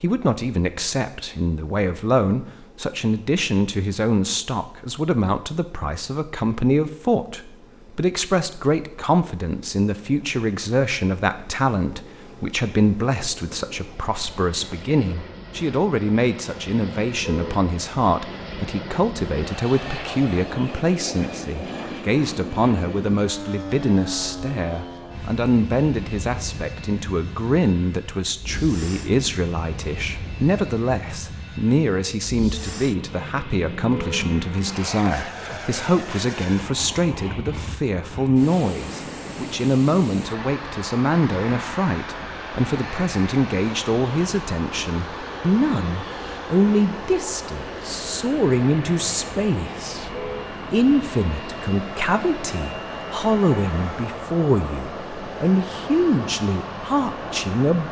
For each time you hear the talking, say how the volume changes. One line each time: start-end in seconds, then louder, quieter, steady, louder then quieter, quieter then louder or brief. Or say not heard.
0.0-57.8 steady.